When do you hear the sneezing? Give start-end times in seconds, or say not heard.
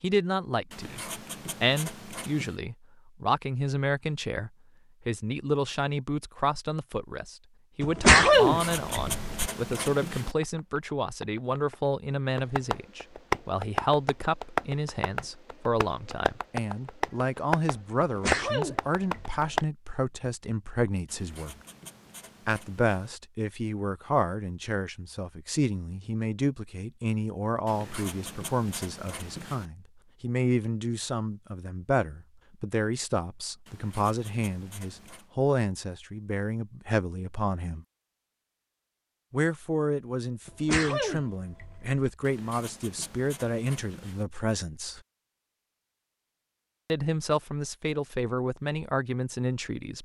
7.8-9.4, 18.0-19.4, 40.5-42.0.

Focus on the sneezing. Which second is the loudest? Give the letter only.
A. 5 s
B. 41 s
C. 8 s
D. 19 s
C.